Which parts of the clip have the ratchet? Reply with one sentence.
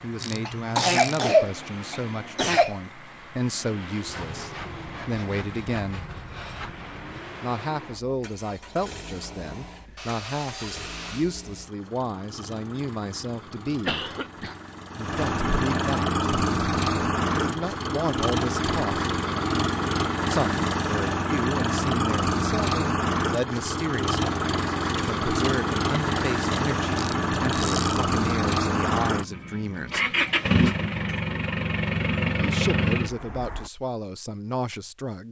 The ratchet can be heard from 0.2 to 1.3 s and from 26.9 to 28.1 s.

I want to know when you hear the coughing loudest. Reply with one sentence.
The loudest moment of the coughing is at 1 second.